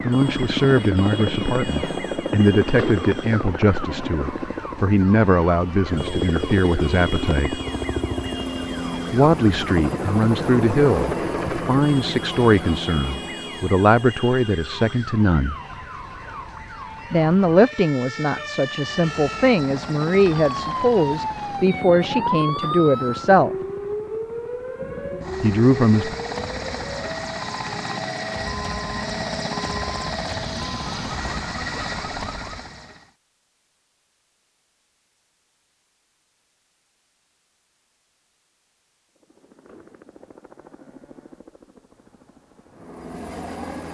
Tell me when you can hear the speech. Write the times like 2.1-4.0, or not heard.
0.0-7.6, 9.1-15.6, 17.1-23.6, 25.4-26.1.